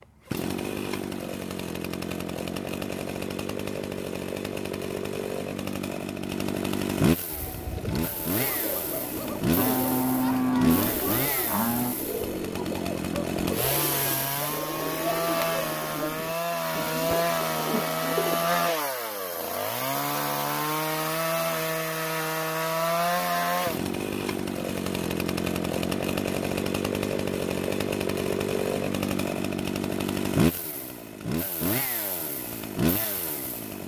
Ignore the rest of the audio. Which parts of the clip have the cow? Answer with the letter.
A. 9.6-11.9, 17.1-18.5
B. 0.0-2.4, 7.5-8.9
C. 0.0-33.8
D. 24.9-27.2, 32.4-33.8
A.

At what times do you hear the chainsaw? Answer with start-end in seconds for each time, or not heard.
0.0-33.8.